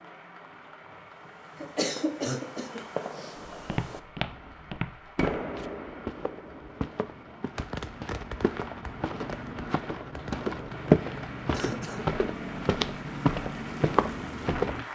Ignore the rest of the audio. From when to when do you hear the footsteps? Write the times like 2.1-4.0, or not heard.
3.5-14.8.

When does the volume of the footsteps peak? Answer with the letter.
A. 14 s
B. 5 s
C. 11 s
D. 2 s
C.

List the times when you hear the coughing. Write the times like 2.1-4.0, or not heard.
1.6-3.4, 11.5-12.2.